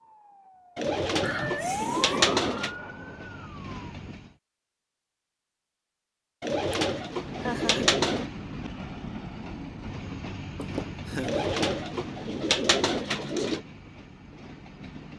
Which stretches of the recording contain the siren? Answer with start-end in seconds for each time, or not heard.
0.0-3.8.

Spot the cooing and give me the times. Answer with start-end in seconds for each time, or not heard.
0.8-2.8, 6.4-8.2, 11.2-13.6.